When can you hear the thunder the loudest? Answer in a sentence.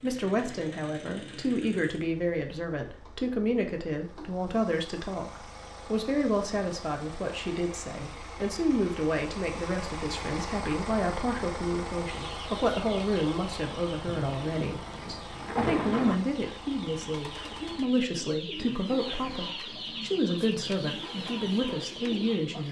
The loudest moment of the thunder is at 16 seconds.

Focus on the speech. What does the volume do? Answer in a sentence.
The loudness of the speech stays about the same.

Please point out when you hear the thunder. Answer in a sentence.
The thunder can be heard from 14.1 to 16.1 s.